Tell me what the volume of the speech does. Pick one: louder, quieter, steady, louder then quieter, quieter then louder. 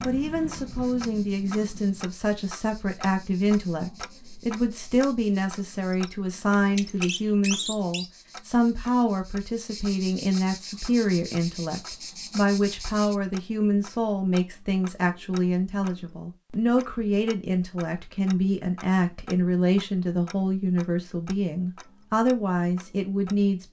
steady.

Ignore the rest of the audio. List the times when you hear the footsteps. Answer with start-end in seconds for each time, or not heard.
not heard.